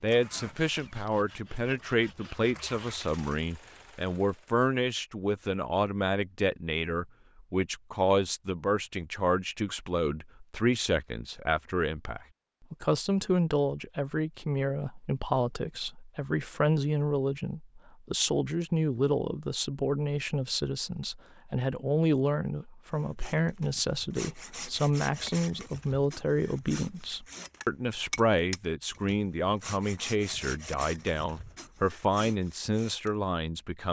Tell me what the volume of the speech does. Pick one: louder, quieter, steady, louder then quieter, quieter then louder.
steady.